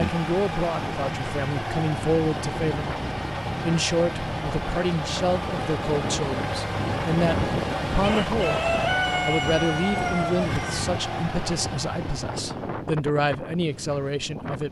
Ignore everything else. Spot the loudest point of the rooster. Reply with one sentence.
The volume of the rooster peaks at 9 seconds.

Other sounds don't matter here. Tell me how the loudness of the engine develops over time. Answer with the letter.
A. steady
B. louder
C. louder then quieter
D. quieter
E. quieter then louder
A.